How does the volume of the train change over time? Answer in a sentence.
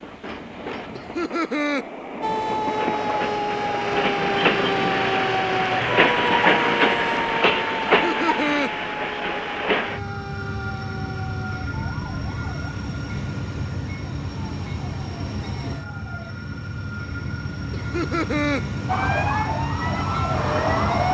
The volume of the train goes up, then down.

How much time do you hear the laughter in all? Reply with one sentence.
You can hear the laughter for 3 seconds altogether.